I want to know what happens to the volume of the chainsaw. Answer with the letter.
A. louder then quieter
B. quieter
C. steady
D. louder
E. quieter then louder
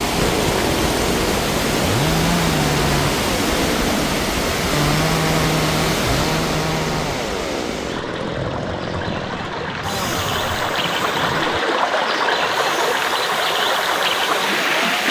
B.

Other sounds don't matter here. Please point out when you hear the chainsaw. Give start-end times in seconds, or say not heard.
0.0-15.0.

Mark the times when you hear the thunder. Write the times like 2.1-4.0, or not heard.
7.9-11.6.